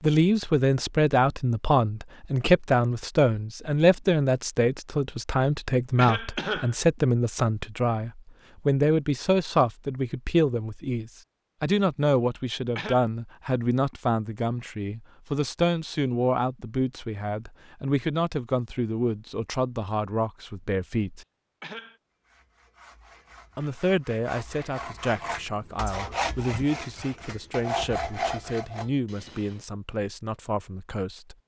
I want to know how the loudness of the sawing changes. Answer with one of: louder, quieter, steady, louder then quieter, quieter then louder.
louder.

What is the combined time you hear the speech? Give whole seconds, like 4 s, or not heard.
29 s.